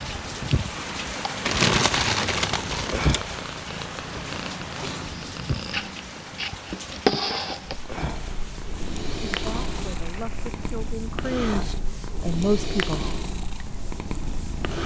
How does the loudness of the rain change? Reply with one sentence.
The loudness of the rain goes down.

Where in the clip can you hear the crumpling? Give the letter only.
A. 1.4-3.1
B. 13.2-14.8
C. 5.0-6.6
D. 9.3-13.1
A.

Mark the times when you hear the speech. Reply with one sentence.
You can hear the speech from 9.3 to 13.1 s.